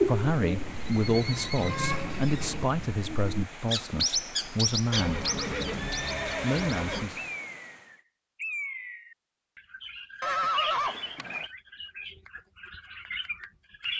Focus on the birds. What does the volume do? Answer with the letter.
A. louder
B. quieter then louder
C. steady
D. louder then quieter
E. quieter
E.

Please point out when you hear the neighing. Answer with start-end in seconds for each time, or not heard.
0.7-2.7, 4.9-7.1, 10.2-11.4.